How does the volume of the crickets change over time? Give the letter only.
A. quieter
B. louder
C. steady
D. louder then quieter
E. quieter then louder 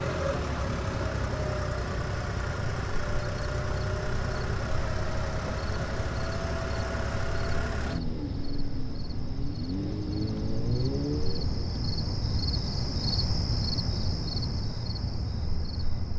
B.